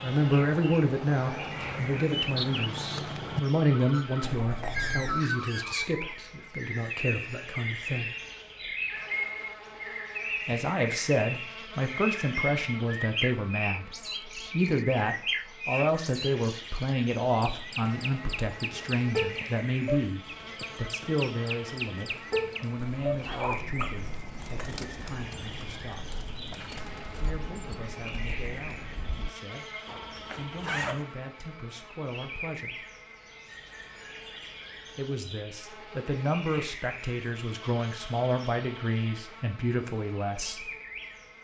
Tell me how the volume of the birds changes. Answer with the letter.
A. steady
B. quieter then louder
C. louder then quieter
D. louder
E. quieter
E.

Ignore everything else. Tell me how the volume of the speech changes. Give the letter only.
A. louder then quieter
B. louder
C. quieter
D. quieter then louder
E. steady
D.